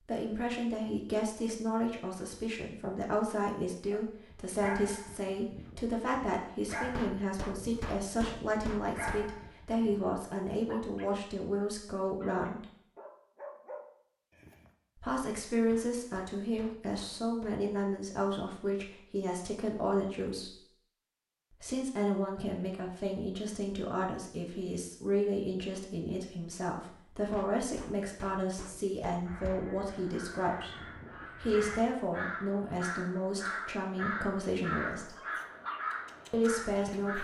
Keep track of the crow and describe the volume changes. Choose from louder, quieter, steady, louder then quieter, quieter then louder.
louder.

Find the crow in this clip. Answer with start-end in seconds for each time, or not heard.
29.2-37.1.